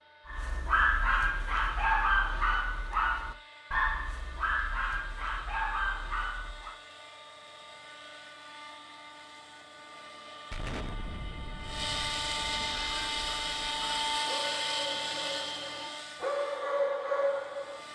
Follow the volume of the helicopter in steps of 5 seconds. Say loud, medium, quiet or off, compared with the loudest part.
quiet, quiet, loud, medium.